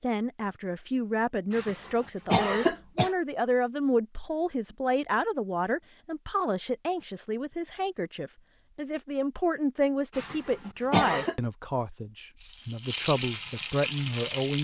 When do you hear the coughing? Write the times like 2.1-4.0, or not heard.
1.5-3.1, 10.2-11.3.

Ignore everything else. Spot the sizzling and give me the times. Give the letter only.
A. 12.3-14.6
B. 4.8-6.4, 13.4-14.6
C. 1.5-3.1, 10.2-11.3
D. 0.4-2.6
A.